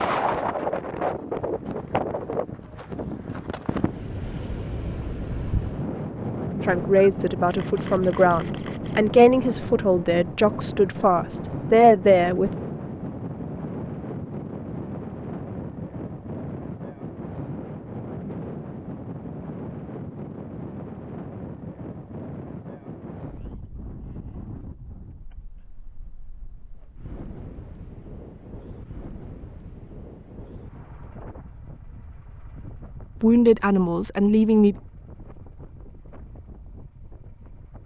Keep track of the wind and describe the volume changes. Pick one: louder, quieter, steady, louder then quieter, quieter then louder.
quieter.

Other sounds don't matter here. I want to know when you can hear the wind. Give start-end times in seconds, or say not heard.
0.0-37.8.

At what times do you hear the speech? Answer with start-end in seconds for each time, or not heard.
6.7-12.5, 33.2-34.8.